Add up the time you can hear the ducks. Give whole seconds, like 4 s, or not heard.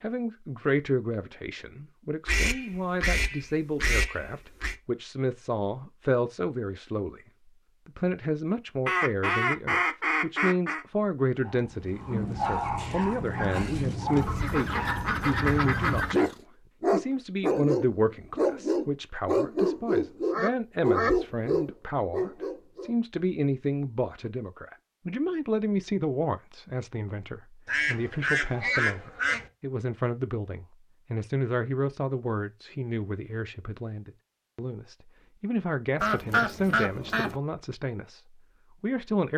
11 s.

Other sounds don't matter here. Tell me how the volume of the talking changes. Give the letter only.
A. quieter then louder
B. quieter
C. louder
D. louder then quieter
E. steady
E.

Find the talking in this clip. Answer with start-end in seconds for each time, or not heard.
0.0-7.2, 7.8-39.3.